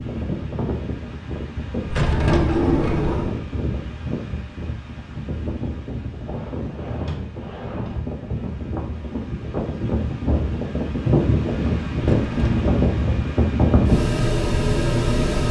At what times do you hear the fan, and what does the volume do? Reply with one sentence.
The fan can be heard from 0.0 to 15.4 s, getting louder.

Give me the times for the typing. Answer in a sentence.
The typing can't be heard in this clip.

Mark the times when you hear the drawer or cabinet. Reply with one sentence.
You can hear the drawer or cabinet from 1.9 to 3.4 s, from 6.2 to 8.2 s and from 12.0 to 12.7 s.